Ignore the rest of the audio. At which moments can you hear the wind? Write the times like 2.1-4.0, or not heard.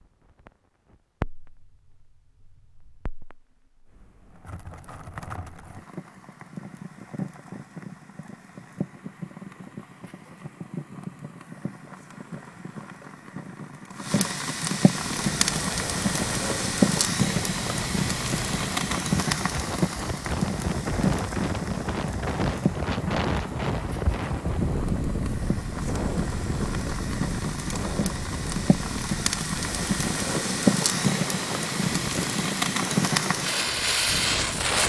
14.9-34.8.